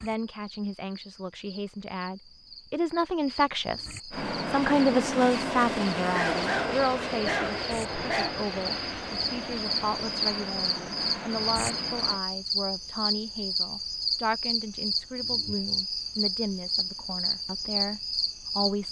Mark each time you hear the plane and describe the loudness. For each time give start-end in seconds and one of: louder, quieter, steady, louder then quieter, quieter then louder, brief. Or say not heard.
4.1-12.2 quieter.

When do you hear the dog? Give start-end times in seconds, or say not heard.
6.1-8.3.